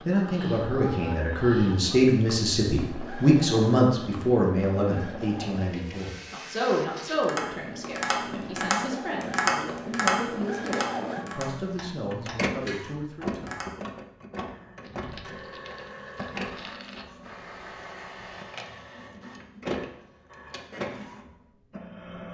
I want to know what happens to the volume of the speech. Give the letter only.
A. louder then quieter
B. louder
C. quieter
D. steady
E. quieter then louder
C.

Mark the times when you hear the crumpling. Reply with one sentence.
You can hear the crumpling from 14.8 to 17.1 s.